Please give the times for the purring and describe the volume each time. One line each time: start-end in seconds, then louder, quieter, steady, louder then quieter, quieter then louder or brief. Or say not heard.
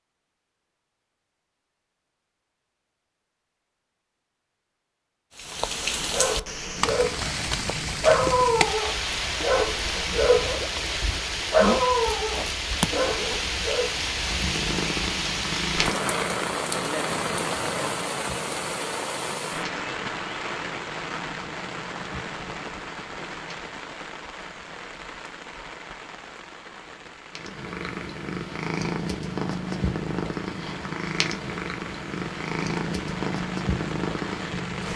14.2-23.8 quieter
27.4-34.9 steady.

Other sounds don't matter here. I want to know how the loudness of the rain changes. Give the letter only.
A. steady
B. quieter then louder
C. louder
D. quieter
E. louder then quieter
D.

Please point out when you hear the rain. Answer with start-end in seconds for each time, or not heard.
5.3-34.9.